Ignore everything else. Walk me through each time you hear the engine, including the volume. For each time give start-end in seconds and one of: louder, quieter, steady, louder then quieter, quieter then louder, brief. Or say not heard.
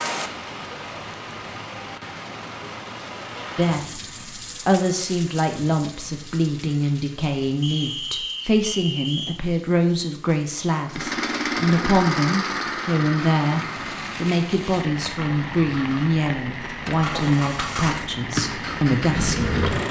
10.8-19.8 quieter then louder.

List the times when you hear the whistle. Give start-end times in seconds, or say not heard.
7.6-9.4.